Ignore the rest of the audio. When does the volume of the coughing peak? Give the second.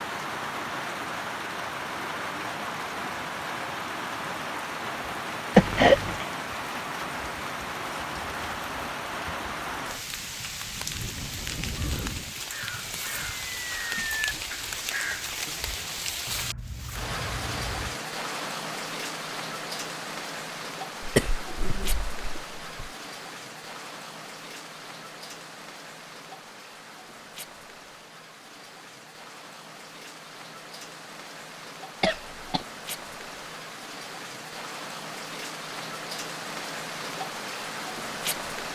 6 s.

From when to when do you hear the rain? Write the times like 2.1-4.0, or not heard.
0.0-38.6.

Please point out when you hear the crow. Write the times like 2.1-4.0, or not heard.
11.8-17.9.